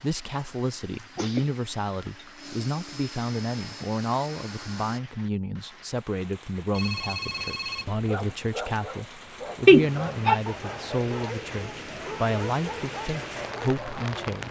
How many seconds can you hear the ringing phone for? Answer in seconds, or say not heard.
2 s.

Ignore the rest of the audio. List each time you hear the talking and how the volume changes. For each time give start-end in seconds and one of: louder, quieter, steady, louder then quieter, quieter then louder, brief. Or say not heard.
0.0-14.4 steady.